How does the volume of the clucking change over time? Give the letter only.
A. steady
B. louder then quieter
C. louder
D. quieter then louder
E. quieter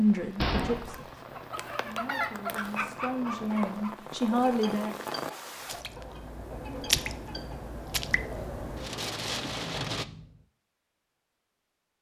E.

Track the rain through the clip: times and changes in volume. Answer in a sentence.
You can hear the rain from 0.0 to 10.1 s, getting louder.